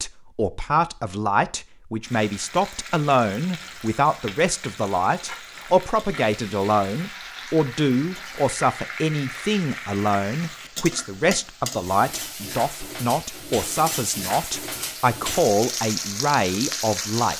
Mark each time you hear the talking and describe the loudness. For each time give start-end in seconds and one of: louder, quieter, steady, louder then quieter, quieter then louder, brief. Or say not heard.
0.0-17.3 steady.